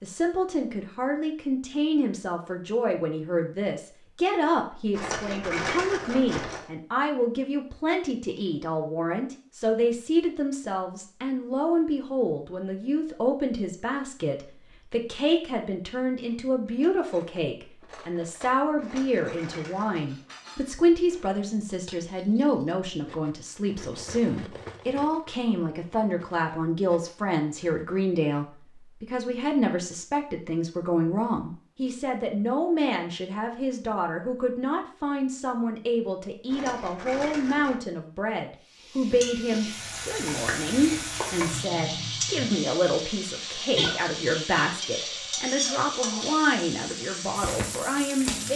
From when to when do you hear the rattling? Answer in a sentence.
The rattling can be heard from 4.9 to 6.7 s, from 18.8 to 20.1 s and from 36.5 to 37.8 s.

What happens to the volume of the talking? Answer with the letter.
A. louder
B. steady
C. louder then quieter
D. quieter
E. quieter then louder
B.